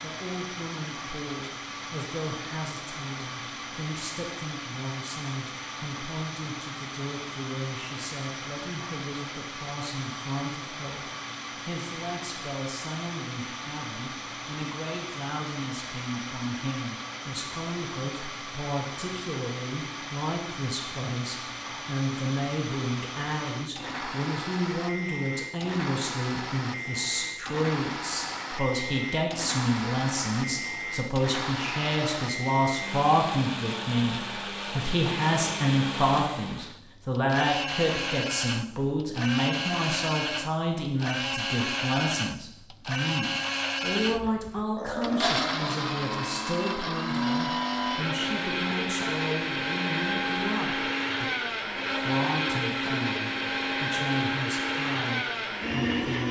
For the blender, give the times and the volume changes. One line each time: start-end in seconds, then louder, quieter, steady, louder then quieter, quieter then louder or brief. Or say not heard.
0.0-56.2 louder.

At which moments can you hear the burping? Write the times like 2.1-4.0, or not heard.
44.2-45.7.